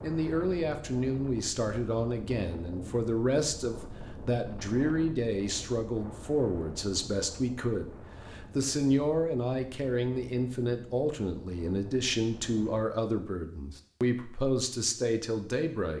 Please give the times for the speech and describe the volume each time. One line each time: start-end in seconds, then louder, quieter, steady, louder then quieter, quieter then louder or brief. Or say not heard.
0.0-15.9 steady.